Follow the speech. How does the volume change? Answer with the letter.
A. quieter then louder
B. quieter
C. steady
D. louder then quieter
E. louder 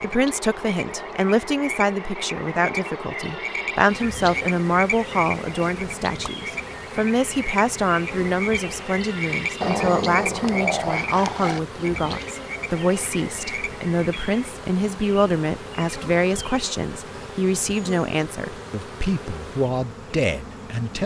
C.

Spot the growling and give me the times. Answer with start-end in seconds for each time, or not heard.
9.6-11.6.